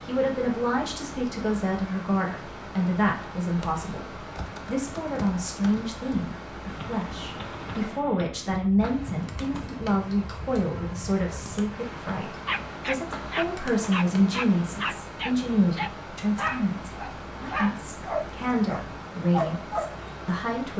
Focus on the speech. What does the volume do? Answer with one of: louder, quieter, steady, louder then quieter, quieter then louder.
steady.